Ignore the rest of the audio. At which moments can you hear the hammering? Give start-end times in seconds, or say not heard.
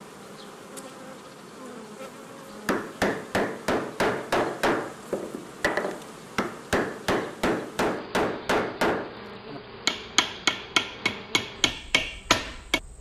2.6-12.8.